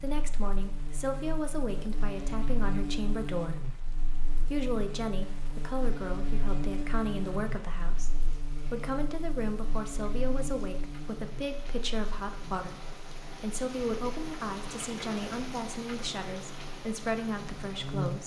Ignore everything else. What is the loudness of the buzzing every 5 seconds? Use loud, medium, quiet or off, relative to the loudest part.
loud, loud, medium, loud.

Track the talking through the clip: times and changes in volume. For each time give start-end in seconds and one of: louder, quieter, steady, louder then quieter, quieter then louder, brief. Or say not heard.
0.0-18.2 steady.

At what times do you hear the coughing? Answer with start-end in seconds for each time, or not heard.
not heard.